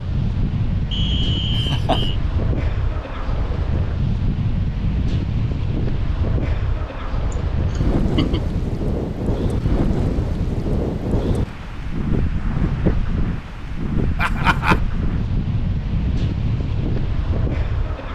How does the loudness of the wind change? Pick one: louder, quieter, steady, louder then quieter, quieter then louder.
steady.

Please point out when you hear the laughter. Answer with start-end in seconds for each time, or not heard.
1.5-2.0, 7.3-8.4, 14.2-14.8.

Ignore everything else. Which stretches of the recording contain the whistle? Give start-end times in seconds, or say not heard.
0.9-2.2.